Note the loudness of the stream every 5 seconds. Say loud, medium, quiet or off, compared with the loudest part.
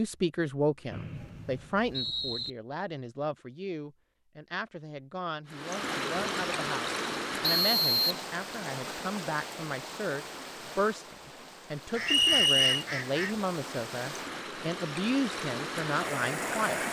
off, loud, medium, loud.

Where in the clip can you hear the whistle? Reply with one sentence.
You can hear the whistle from 0.9 to 2.5 s, from 7.4 to 8.2 s and from 12.1 to 12.8 s.